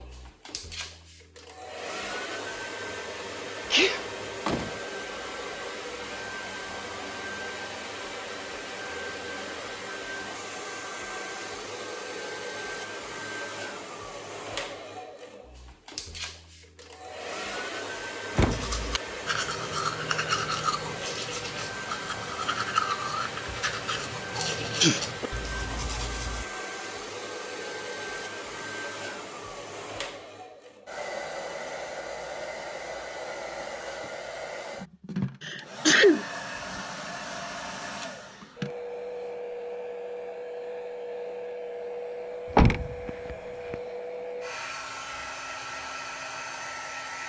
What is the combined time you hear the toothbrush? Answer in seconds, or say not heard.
8 s.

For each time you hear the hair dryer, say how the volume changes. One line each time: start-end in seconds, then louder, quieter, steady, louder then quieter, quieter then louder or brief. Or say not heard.
0.0-47.2 steady.